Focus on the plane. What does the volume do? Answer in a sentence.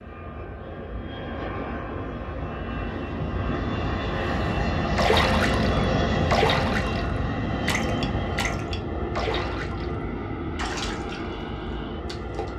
The loudness of the plane goes up, then down.